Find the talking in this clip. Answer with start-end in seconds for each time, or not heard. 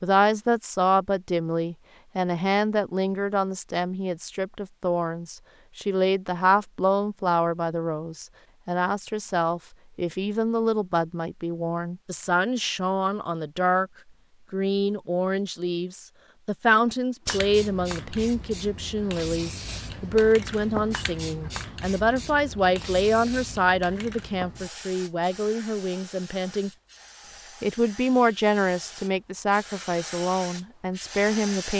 0.0-13.9, 14.5-26.7, 27.6-31.7.